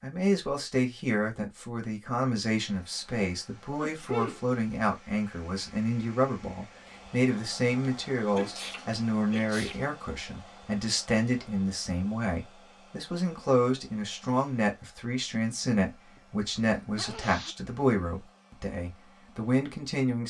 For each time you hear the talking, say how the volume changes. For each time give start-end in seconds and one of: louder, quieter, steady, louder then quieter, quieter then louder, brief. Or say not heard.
0.0-20.2 steady.